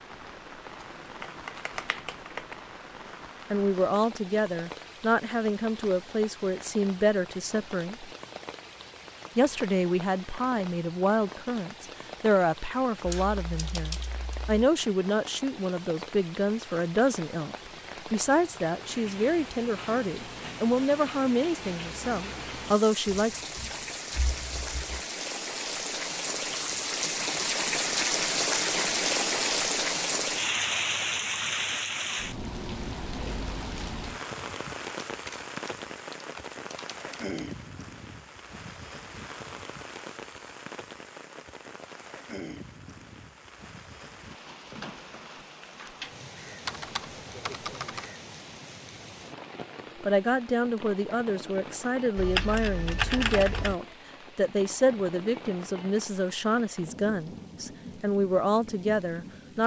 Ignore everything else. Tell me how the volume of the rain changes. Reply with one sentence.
The loudness of the rain goes up, then down.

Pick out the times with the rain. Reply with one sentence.
You can hear the rain from 0.0 to 59.6 s.